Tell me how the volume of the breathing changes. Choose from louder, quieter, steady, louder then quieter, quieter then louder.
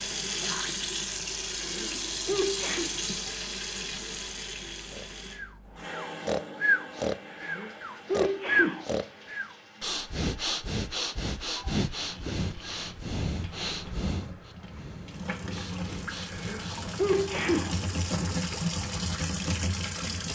quieter.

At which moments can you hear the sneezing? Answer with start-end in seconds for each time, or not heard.
1.4-2.9, 7.3-8.8, 16.2-17.8.